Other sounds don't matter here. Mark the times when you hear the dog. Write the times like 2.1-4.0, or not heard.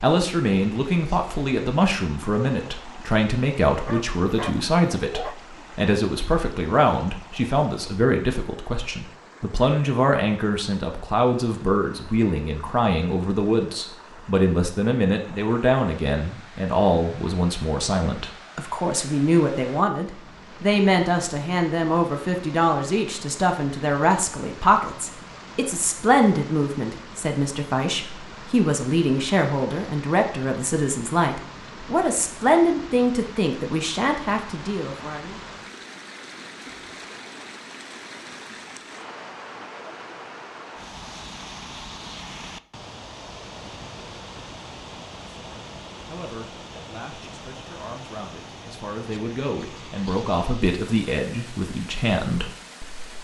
3.7-5.3.